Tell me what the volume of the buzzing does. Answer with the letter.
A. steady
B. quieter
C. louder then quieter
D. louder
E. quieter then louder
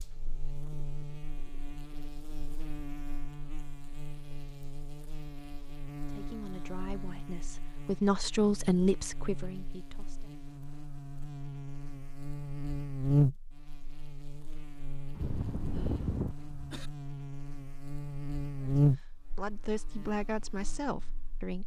D.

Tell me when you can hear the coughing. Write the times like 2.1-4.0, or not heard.
15.2-16.9.